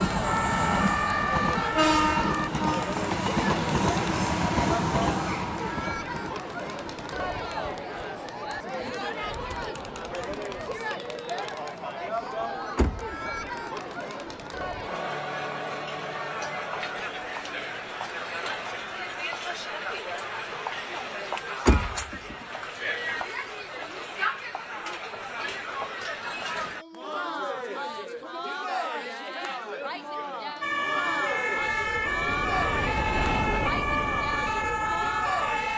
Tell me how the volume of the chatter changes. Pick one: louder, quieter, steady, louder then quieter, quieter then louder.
steady.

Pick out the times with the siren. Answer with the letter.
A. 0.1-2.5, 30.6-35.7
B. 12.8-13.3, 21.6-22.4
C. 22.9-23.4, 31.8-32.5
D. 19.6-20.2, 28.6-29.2
A.